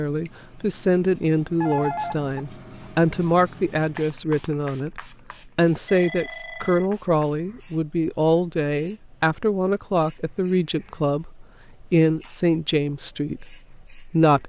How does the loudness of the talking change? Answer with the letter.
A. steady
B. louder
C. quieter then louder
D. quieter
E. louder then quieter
A.